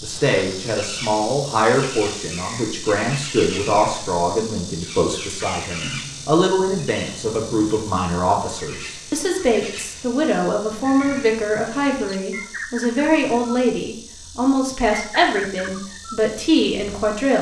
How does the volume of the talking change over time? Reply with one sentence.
The loudness of the talking stays about the same.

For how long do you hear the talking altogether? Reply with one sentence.
The talking can be heard for 17 seconds in total.